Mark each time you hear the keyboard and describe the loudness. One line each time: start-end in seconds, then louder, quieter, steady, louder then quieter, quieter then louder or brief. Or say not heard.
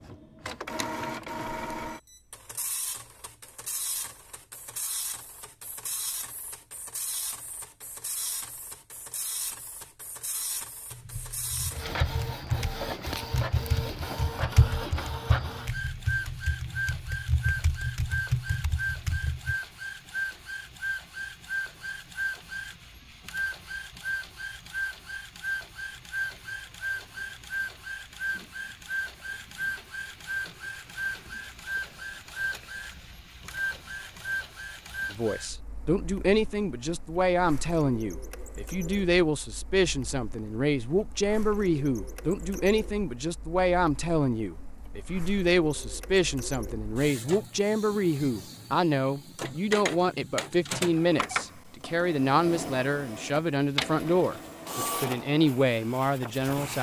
10.9-19.6 steady.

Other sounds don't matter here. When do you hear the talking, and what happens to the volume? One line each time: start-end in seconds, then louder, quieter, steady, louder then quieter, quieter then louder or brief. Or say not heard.
35.1-56.7 steady.